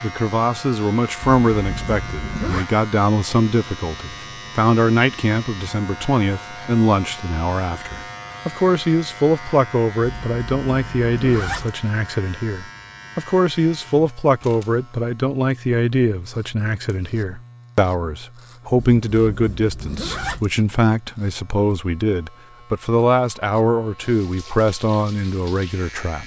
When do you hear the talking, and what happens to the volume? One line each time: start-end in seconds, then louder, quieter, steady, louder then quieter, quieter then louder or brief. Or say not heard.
0.0-26.2 steady.